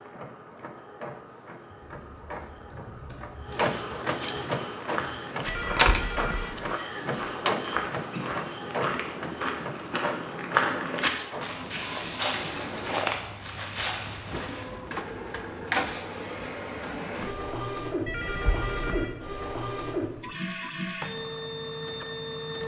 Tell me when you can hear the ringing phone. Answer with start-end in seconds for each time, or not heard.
5.5-6.5, 18.1-19.1.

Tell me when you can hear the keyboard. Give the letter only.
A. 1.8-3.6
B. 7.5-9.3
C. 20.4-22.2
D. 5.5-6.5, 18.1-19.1
A.